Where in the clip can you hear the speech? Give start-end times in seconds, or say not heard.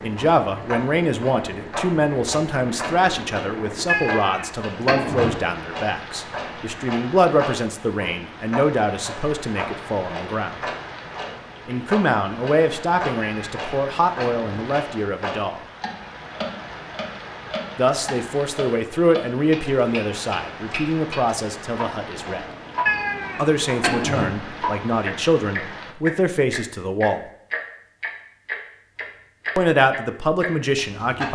0.0-10.6, 11.7-15.6, 17.8-22.4, 23.4-27.2, 29.6-31.3.